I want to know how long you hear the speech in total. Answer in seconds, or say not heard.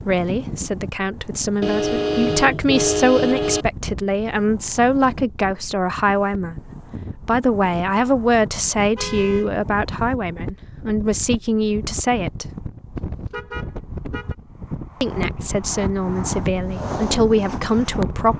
16 s.